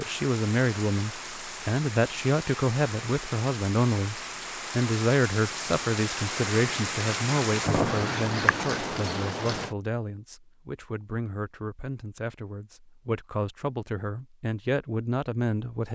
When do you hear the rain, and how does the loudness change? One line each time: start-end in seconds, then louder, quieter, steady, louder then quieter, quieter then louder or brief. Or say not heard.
0.0-9.8 louder.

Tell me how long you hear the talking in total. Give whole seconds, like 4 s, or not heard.
16 s.